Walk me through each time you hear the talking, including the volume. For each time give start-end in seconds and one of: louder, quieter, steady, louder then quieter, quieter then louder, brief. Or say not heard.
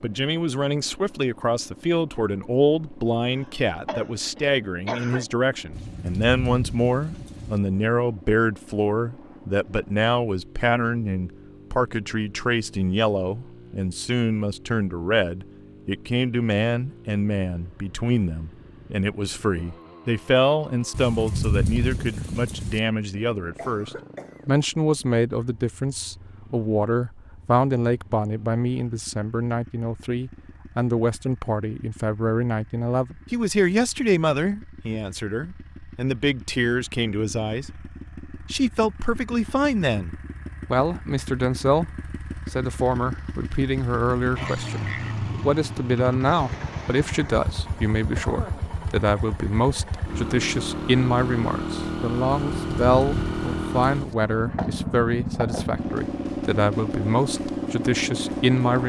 0.0-58.8 steady.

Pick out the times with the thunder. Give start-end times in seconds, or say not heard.
5.7-7.6, 20.9-22.8, 52.5-54.1.